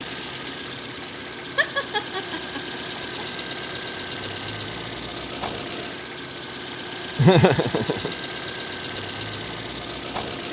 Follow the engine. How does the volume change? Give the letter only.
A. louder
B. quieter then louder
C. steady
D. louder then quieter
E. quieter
C.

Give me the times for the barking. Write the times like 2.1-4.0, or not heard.
not heard.